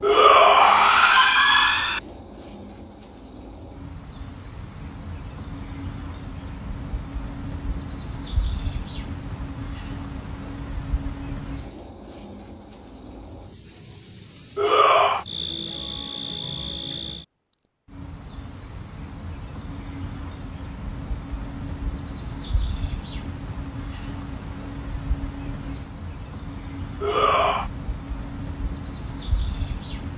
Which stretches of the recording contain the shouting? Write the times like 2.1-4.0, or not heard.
0.0-2.0, 14.6-15.2, 27.0-27.7.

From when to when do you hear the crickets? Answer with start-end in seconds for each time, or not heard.
0.0-30.1.